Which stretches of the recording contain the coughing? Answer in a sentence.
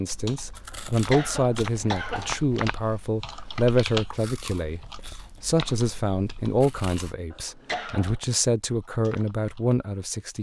The coughing can be heard from 0.7 to 2.4 s and from 7.3 to 8.2 s.